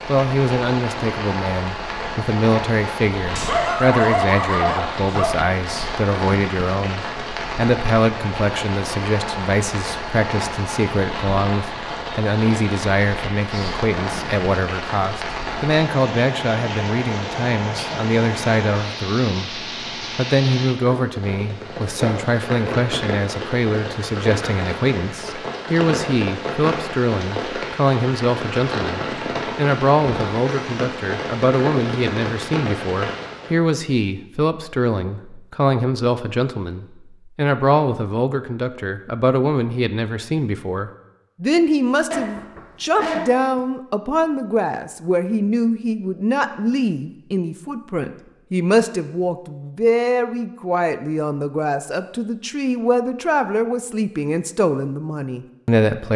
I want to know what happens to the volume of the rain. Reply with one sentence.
The volume of the rain stays about the same.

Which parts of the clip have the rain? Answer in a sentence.
The rain can be heard from 0.0 to 33.6 s.